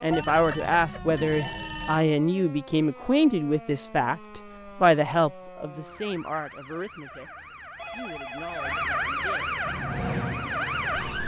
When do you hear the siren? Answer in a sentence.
The siren can be heard from 0.0 to 11.2 s.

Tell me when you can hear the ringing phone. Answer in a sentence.
The ringing phone can be heard from 0.1 to 2.0 s and from 7.8 to 9.0 s.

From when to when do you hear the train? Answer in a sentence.
The train can be heard from 9.6 to 11.2 s.